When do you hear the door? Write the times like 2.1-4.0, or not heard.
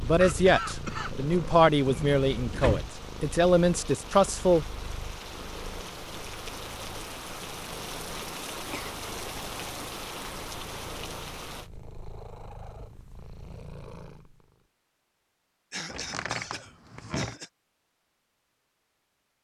1.9-2.9, 15.9-17.4.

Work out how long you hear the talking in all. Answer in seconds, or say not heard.
5 s.